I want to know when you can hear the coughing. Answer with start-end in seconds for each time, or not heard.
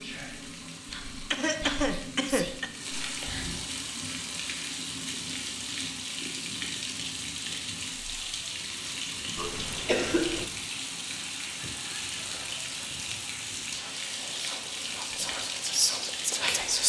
0.9-2.7, 9.3-10.5.